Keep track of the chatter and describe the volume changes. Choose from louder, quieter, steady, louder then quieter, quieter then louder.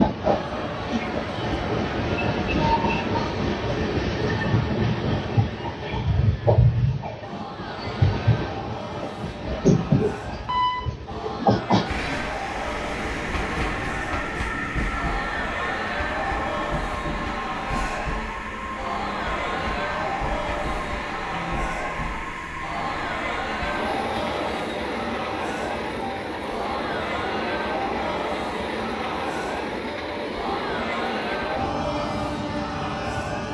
louder.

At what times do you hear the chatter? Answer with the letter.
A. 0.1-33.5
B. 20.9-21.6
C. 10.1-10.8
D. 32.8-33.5
A.